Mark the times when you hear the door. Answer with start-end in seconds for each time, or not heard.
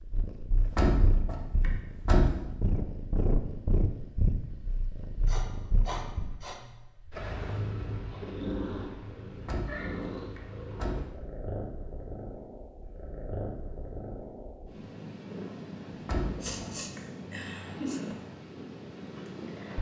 0.6-2.4, 9.3-11.1, 15.9-17.0.